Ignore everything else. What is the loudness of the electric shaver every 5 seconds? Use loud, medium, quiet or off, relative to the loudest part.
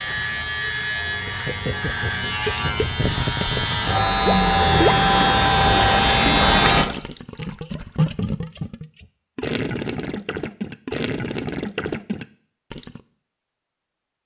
medium, loud, off.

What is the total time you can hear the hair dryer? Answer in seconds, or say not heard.
not heard.